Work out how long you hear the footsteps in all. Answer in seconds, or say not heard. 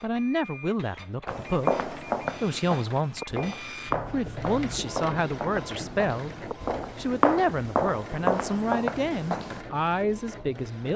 8 s.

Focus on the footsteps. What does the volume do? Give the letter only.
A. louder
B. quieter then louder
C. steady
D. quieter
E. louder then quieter
B.